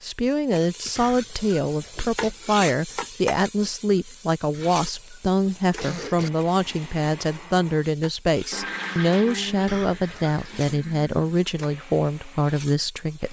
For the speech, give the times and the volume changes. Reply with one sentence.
You can hear the speech from 0.0 to 13.2 s, at a steady volume.